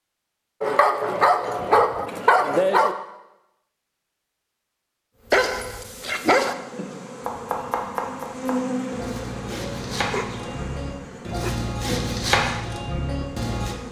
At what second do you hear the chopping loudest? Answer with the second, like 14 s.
12 s.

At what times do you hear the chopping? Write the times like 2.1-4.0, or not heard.
7.2-13.8.